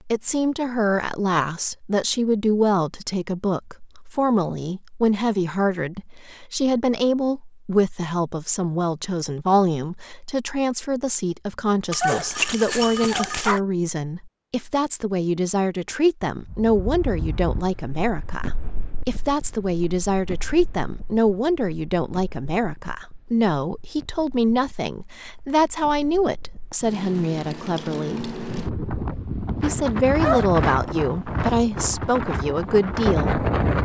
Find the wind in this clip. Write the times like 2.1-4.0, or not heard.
16.4-33.7.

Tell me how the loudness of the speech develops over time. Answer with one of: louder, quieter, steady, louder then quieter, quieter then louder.
steady.